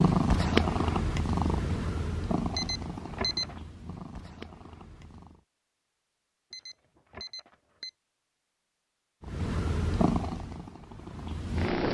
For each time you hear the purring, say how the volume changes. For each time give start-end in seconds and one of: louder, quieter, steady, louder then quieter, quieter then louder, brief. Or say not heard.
0.0-5.5 quieter
9.2-11.8 brief.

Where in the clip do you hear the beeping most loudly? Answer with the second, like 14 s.
3 s.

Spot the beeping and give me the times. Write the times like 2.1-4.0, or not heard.
2.5-3.5, 6.5-7.9.